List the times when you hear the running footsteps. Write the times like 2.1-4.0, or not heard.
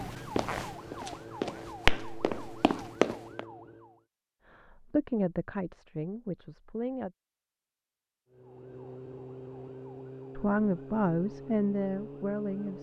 0.0-3.5.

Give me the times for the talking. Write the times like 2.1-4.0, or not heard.
4.5-7.1, 10.3-12.7.